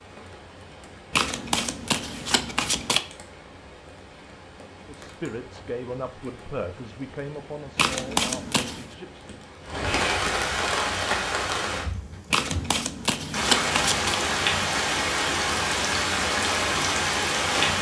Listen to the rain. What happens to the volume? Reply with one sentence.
The volume of the rain goes up.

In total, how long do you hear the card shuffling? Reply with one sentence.
You can hear the card shuffling for 5 seconds altogether.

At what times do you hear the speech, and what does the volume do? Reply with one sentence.
The speech can be heard from 4.8 to 9.3 s, getting quieter.